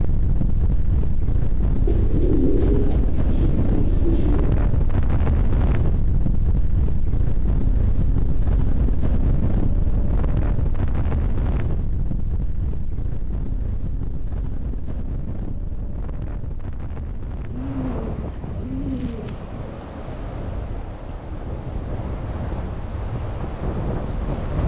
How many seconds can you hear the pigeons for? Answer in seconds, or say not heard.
5 s.